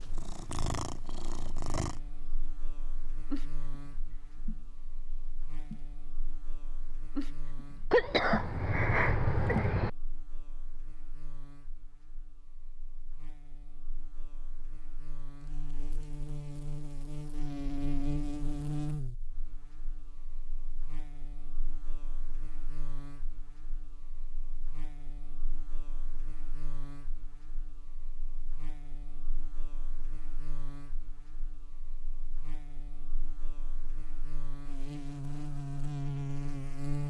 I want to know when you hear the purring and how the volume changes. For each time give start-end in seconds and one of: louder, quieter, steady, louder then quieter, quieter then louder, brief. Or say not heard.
0.0-9.7 quieter then louder.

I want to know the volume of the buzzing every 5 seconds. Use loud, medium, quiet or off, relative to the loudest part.
quiet, quiet, quiet, loud, quiet, quiet, quiet, loud.